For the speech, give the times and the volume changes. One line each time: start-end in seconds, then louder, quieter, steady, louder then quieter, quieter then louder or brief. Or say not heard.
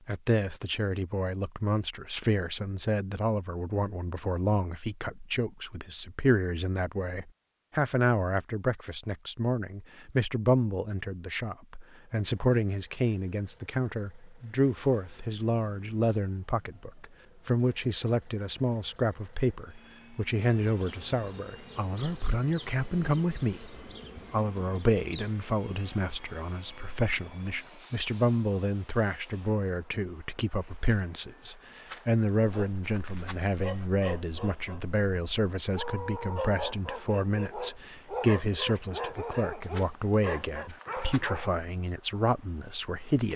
0.1-43.3 steady.